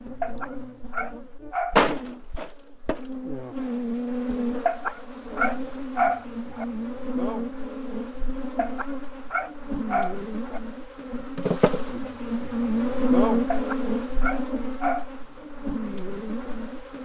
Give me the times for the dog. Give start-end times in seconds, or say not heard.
0.2-1.8, 4.7-6.7, 8.6-10.6, 13.5-15.1.